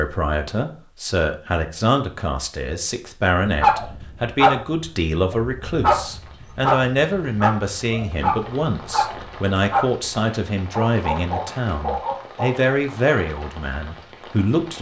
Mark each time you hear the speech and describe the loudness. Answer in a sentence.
You can hear the speech from 0.0 to 14.7 s, at a steady volume.